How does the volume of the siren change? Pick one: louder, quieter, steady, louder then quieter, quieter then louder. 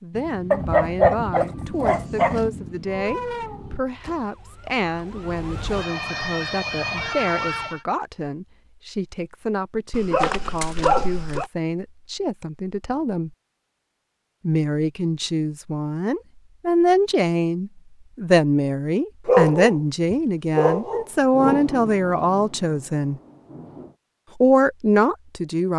quieter then louder.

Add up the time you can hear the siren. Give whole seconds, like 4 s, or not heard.
5 s.